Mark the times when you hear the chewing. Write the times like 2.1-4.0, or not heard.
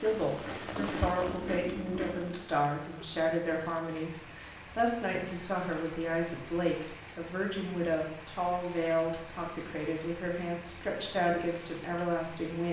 0.0-2.5.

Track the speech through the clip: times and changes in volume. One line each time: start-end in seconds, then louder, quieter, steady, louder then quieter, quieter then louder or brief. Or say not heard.
0.0-12.6 steady.